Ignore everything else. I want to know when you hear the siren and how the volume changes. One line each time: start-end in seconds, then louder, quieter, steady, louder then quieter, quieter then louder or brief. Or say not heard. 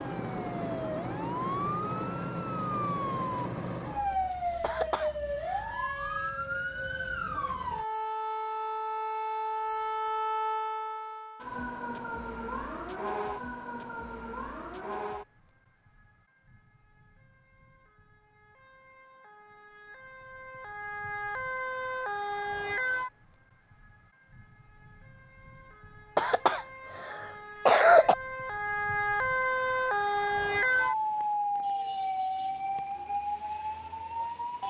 0.0-34.6 quieter then louder.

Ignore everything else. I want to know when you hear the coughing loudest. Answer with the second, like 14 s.
28 s.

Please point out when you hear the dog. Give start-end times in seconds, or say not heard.
not heard.